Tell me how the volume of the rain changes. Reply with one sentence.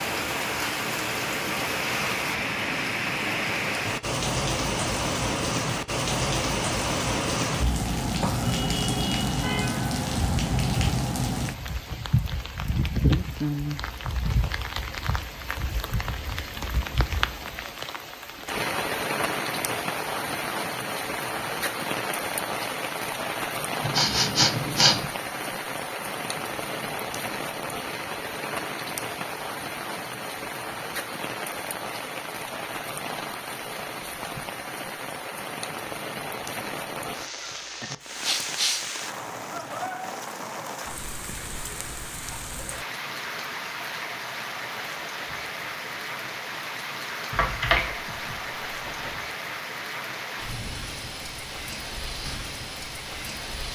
The volume of the rain goes down.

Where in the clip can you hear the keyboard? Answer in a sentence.
The keyboard can be heard from 47.3 to 49.1 s.